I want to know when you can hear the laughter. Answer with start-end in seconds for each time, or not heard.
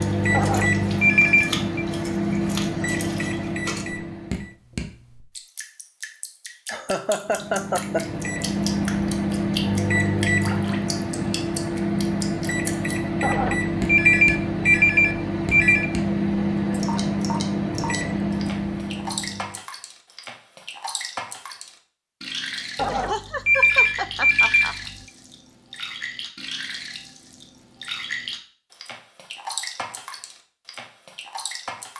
6.7-8.2, 22.9-24.8.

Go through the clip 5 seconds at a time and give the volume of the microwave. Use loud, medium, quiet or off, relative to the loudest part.
loud, loud, loud, loud, off, off, off.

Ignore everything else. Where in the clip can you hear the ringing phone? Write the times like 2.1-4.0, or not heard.
0.3-1.9, 13.2-15.9, 22.8-24.7.